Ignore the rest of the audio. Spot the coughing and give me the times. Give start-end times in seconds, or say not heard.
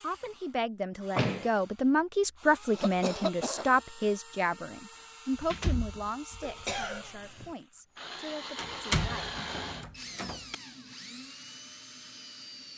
2.7-3.7, 6.4-7.5.